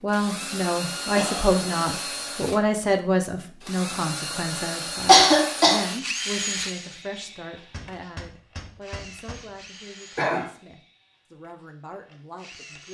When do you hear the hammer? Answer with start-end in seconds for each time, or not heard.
7.7-9.6.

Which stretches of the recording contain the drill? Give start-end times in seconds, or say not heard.
0.1-2.7, 3.6-12.8.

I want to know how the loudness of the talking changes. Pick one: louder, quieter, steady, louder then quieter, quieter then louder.
quieter.